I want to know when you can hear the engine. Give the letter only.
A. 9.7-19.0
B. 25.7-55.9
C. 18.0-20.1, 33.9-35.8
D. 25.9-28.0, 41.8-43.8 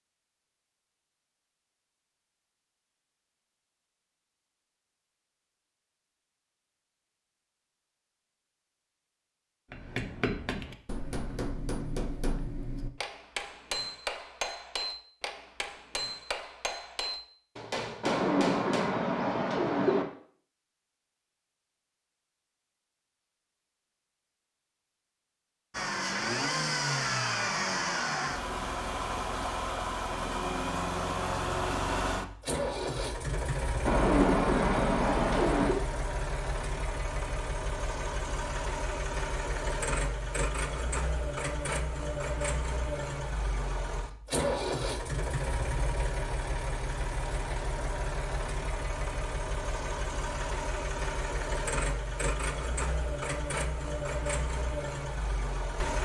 B.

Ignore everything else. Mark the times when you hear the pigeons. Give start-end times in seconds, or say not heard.
18.0-20.1, 33.9-35.8.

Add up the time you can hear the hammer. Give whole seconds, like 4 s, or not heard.
9 s.